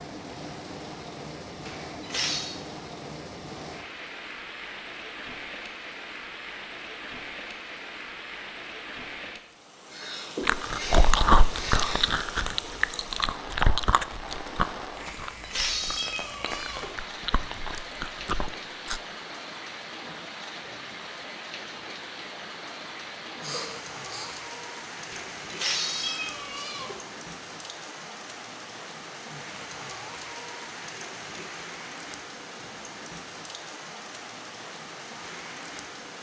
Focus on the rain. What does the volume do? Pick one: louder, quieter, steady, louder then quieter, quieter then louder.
steady.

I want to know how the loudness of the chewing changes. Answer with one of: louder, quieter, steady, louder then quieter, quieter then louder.
quieter then louder.